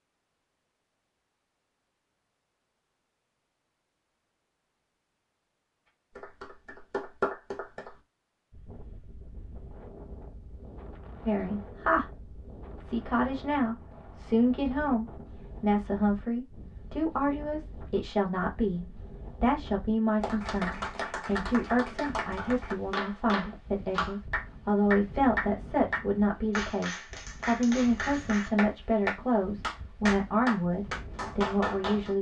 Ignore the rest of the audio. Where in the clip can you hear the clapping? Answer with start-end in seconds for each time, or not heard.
6.2-8.0, 20.2-32.1.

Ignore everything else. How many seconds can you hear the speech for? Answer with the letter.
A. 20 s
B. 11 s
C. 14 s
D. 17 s
A.